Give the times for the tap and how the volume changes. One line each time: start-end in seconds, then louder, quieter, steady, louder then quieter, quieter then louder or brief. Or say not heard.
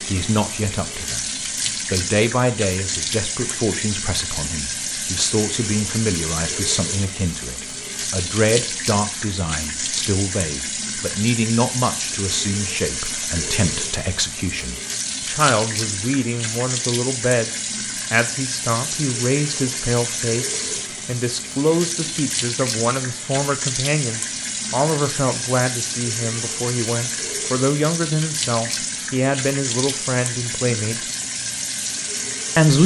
0.0-32.8 steady.